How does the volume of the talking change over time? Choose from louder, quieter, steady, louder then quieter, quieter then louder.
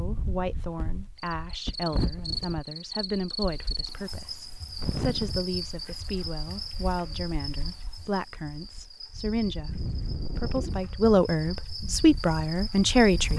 louder.